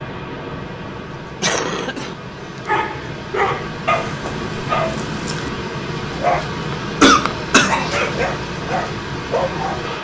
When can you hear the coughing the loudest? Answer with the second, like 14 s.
7 s.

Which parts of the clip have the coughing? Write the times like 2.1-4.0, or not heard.
1.4-2.1, 6.7-8.0.